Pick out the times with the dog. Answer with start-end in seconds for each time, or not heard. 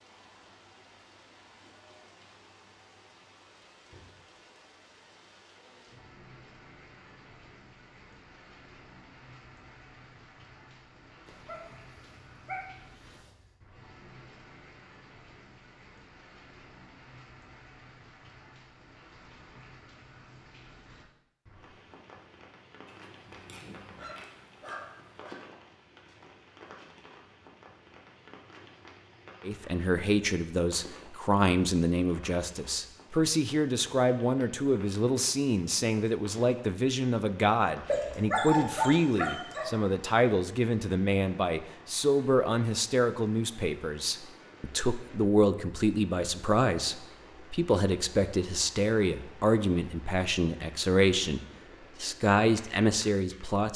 11.2-13.6, 22.9-25.4, 37.9-39.6.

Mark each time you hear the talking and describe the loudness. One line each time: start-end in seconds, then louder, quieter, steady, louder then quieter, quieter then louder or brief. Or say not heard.
29.4-53.7 steady.